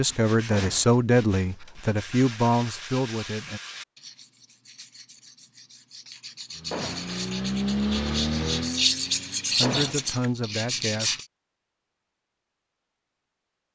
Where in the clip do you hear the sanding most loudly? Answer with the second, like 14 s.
9 s.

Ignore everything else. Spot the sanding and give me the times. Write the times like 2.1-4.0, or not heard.
0.0-11.2.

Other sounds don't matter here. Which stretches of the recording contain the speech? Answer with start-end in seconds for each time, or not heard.
0.0-3.6, 9.6-11.2.